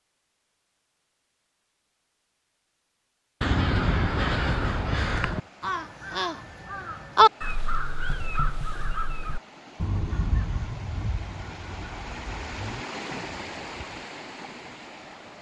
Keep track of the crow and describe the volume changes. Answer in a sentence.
The loudness of the crow goes down.